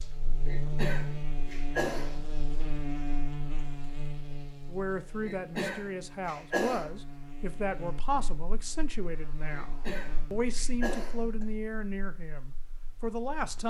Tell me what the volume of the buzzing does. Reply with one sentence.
The volume of the buzzing goes down.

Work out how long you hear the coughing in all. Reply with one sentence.
The coughing can be heard for 5 seconds in total.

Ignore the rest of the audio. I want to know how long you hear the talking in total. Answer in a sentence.
The talking can be heard for 9 seconds in total.